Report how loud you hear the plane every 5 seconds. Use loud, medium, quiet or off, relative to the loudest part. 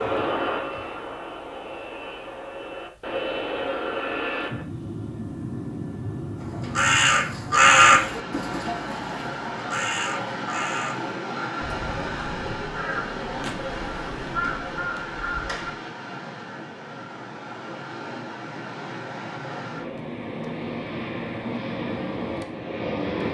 loud, loud, loud, medium, loud.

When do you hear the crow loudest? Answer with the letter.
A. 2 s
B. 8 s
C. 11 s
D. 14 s
B.